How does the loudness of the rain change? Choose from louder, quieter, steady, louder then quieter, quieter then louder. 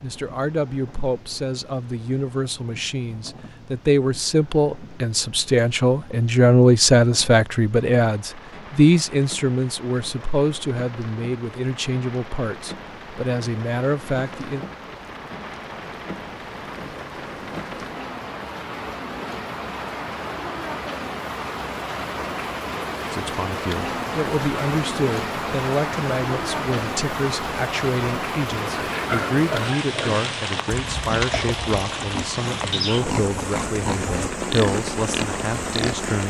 louder.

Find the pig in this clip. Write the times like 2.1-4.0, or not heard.
28.8-36.0.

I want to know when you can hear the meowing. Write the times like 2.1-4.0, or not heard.
not heard.